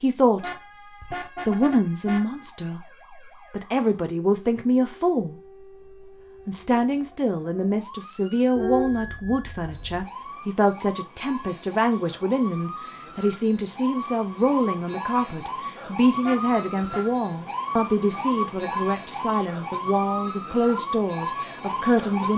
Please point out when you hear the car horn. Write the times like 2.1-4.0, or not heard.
0.4-2.2, 8.6-10.1, 16.2-17.1.